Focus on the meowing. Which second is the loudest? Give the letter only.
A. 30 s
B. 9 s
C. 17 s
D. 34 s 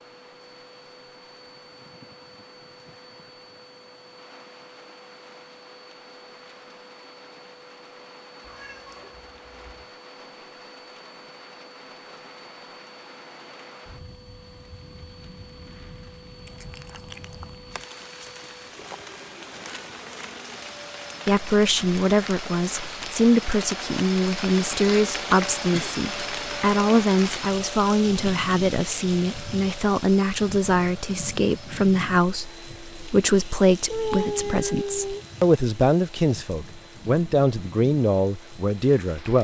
D.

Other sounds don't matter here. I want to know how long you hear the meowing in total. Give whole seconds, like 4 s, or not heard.
4 s.